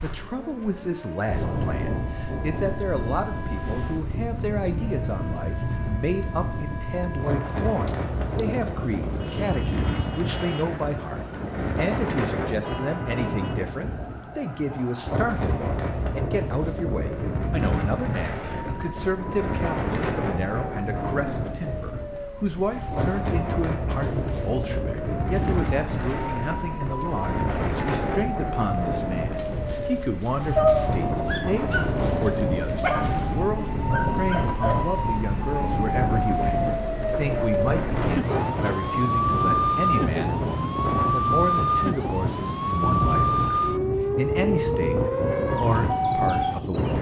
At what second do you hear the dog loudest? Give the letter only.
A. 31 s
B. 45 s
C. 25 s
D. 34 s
A.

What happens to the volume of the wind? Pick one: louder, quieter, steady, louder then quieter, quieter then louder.
steady.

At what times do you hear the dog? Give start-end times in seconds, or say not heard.
29.4-35.0.